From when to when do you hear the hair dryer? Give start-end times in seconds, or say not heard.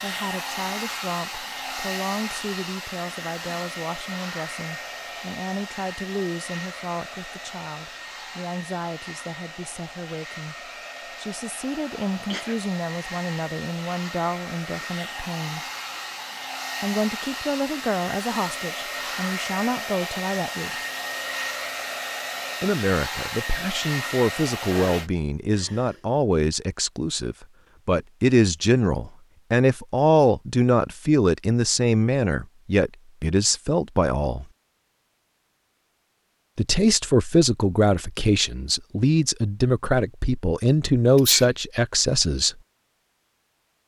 0.0-25.1.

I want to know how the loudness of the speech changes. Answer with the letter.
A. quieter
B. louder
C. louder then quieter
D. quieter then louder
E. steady
B.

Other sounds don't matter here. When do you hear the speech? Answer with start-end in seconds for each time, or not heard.
0.0-15.7, 16.8-20.7, 22.6-34.5, 36.5-42.5.